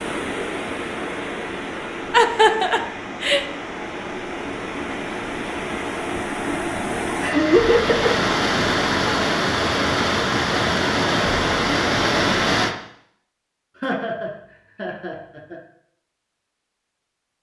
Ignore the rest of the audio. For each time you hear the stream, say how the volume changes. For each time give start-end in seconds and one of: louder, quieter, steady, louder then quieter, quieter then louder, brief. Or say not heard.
0.0-12.8 louder.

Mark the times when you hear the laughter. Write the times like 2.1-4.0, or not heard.
2.1-3.5, 7.2-8.1, 13.8-15.6.